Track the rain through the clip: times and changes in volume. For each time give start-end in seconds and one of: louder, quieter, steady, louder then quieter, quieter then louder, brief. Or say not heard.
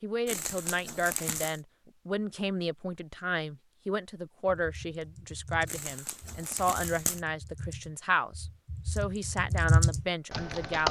not heard.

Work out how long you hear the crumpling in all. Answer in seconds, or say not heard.
3 s.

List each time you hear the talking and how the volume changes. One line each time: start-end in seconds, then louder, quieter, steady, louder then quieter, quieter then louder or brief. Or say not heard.
0.0-10.8 steady.